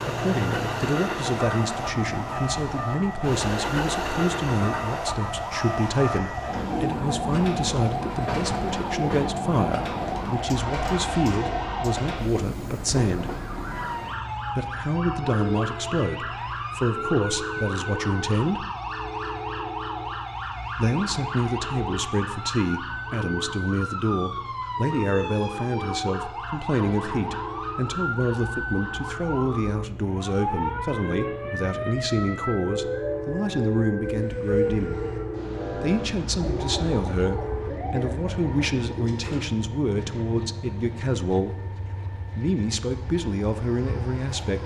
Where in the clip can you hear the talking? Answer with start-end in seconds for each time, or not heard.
0.1-13.3, 14.6-18.6, 20.8-35.0, 35.7-41.8, 42.4-44.6.